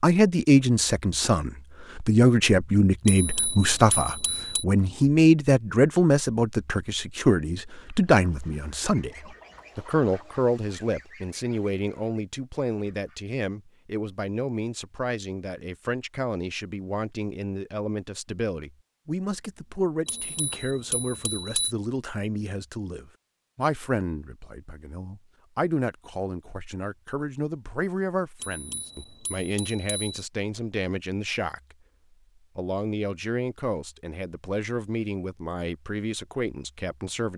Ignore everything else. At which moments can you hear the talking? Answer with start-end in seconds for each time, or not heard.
0.0-31.8, 32.5-37.3.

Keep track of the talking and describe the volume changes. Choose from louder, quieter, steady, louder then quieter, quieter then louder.
quieter.